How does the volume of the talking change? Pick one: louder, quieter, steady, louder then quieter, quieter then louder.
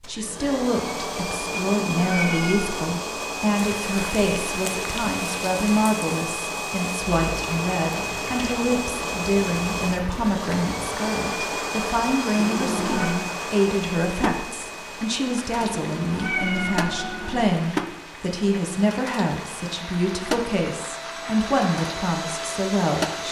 steady.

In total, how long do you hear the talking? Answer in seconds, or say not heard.
23 s.